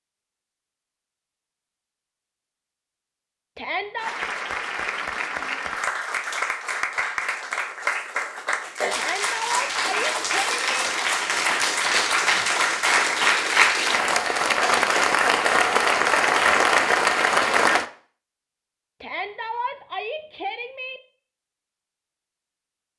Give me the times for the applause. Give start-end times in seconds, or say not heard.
4.0-17.9.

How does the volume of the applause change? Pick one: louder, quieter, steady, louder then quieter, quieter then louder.
louder.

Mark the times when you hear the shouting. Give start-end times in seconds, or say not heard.
3.5-4.2, 8.9-10.8, 19.0-21.0.